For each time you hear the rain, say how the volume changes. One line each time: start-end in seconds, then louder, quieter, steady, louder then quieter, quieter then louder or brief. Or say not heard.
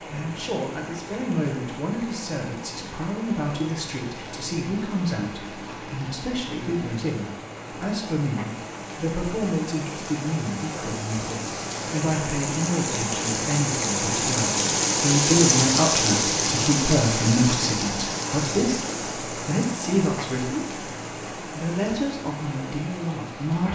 0.0-23.7 louder then quieter.